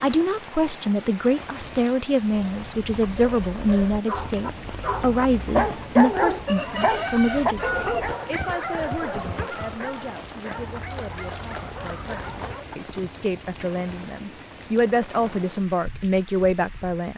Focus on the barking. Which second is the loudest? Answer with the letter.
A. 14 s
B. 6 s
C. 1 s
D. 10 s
B.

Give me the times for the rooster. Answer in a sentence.
You can hear the rooster from 6.5 to 8.0 s.